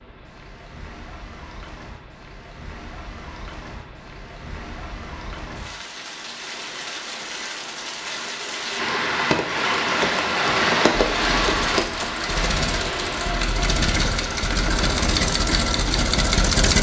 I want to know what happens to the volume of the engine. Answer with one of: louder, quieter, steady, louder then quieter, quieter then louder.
louder.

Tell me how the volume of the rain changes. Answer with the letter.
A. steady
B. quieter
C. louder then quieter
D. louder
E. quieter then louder
C.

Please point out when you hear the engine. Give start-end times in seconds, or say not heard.
11.2-16.7.